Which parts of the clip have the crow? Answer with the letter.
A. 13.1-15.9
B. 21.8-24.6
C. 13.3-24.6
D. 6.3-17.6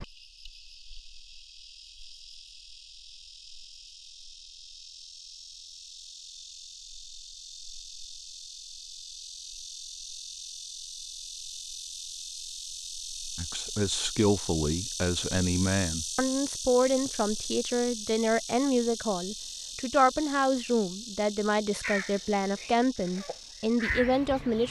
B.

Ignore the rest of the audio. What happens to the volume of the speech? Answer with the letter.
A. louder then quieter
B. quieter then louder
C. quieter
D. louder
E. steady
E.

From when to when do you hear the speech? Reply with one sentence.
The speech can be heard from 13.3 to 24.6 s.